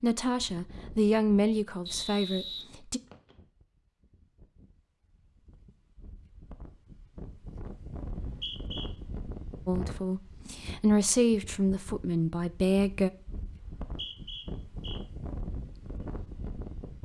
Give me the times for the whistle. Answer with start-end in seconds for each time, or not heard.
1.9-3.4, 8.2-8.9, 13.6-15.0.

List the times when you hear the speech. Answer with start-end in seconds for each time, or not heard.
0.0-3.0, 9.7-13.1.